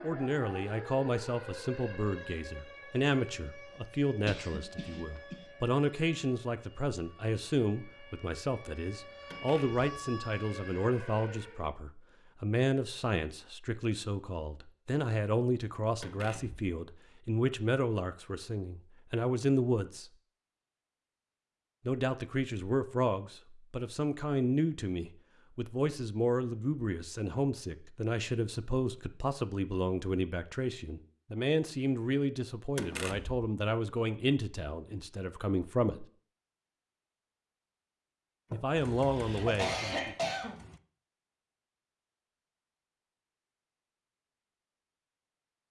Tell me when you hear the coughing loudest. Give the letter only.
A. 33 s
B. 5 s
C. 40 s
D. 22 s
C.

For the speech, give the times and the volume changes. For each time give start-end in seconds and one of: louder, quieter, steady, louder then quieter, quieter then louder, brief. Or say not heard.
0.0-20.1 steady
21.9-36.0 steady
38.5-40.1 brief.